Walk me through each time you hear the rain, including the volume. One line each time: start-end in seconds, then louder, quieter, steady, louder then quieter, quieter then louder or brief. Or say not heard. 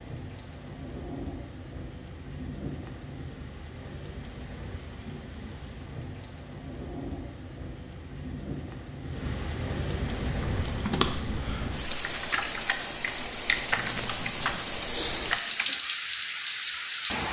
0.0-17.2 louder.